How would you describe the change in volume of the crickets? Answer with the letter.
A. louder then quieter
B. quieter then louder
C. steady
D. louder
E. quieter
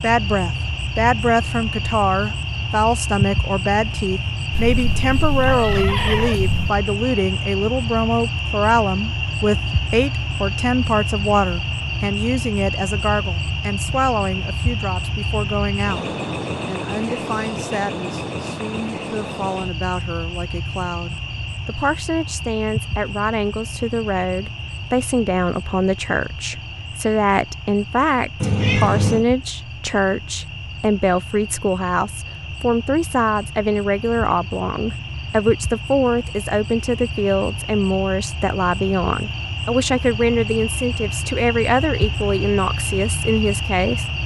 B.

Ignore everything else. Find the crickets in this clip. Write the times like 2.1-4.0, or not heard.
0.0-44.2.